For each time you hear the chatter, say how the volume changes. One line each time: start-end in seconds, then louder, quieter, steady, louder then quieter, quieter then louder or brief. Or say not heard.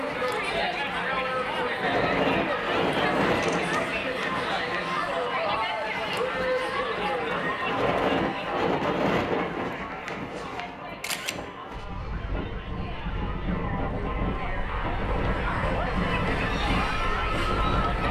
0.0-18.0 quieter then louder.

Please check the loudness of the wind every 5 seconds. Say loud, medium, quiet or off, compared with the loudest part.
loud, loud, medium, loud.